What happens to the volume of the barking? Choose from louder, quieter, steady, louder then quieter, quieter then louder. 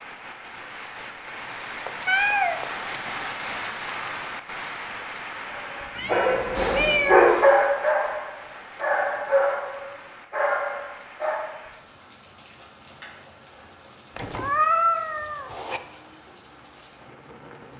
louder then quieter.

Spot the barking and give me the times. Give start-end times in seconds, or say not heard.
5.5-11.5.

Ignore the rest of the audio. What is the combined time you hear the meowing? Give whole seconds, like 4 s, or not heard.
4 s.